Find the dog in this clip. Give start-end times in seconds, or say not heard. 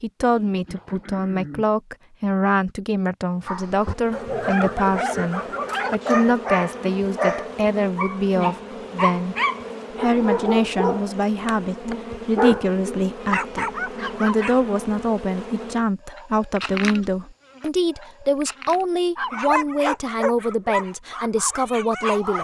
3.5-14.6, 19.1-22.4.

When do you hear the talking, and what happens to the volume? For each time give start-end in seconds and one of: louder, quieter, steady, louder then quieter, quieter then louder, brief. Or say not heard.
0.0-9.3 steady
9.9-22.4 steady.